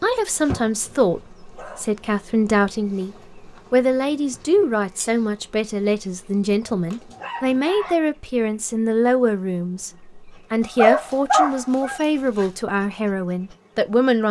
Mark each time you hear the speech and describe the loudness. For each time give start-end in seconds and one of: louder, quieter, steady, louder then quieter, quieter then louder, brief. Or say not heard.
0.0-14.2 steady.